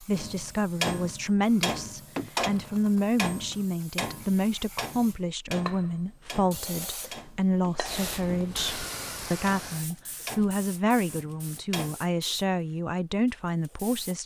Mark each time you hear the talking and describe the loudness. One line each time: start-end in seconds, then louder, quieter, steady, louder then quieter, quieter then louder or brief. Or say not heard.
0.0-14.2 steady.